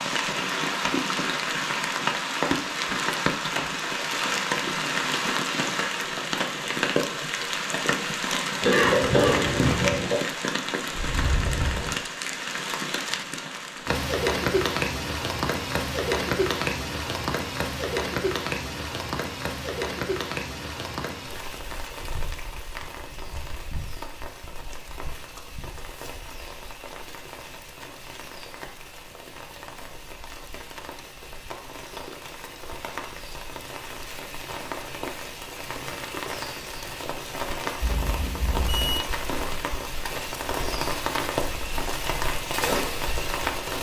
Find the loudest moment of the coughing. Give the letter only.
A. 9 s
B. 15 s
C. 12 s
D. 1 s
A.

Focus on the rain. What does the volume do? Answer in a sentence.
The volume of the rain goes down, then up.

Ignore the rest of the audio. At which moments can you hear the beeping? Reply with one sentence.
You can hear the beeping from 37.8 to 39.0 s.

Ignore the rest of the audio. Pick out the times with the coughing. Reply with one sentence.
You can hear the coughing from 8.6 to 10.2 s.